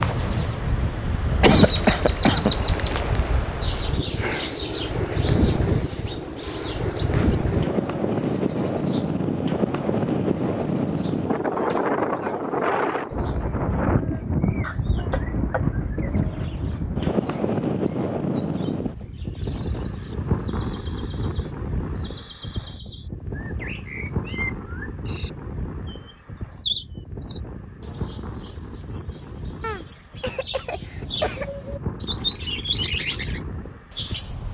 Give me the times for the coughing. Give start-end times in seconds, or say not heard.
1.4-2.5, 14.6-16.2, 29.6-31.4.